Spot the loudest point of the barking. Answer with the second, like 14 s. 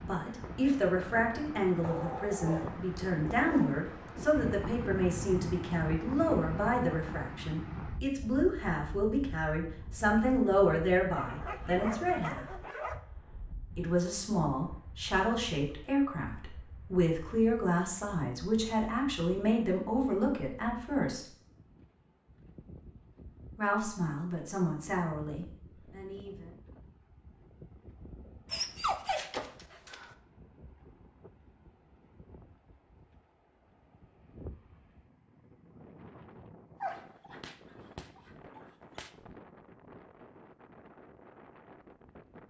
29 s.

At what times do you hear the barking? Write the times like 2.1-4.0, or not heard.
1.8-3.8, 11.1-13.0, 28.5-30.1, 36.8-39.1.